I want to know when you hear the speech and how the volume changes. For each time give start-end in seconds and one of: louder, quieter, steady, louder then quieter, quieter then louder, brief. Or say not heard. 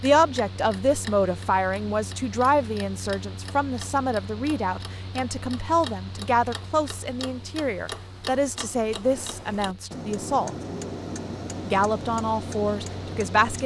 0.0-10.6 steady
11.7-13.6 brief.